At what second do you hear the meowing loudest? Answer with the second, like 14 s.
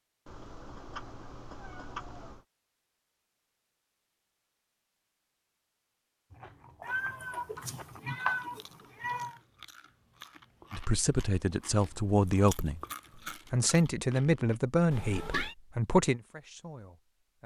8 s.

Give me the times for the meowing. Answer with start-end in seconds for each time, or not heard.
0.2-2.5, 6.8-9.3, 14.9-15.6.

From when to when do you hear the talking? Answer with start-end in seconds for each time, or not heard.
10.7-12.8, 13.5-17.4.